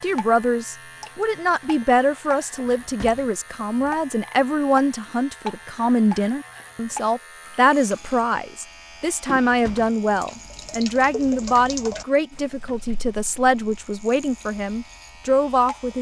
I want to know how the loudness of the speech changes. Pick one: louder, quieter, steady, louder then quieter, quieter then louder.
steady.